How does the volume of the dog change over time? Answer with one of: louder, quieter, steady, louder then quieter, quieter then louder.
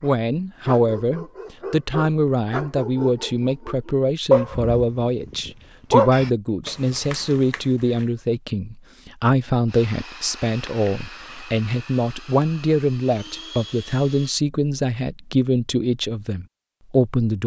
louder then quieter.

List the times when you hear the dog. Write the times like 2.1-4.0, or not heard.
0.0-8.0.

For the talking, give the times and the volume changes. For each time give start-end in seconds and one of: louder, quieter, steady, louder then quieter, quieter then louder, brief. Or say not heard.
0.0-17.4 steady.